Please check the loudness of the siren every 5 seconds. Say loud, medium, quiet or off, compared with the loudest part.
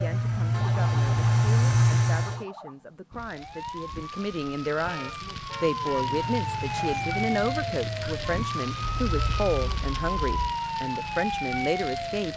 medium, loud, loud.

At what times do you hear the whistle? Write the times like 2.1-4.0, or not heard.
not heard.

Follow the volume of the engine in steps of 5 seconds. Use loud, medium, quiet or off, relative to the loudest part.
loud, quiet, off.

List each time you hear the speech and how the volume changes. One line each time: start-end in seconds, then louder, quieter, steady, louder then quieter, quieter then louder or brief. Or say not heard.
0.0-12.3 louder.